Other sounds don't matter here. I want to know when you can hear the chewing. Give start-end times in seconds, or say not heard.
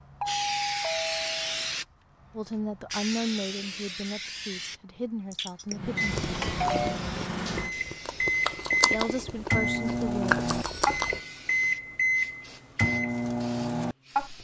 5.3-11.2.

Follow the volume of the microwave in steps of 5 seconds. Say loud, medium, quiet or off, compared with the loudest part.
off, loud, loud.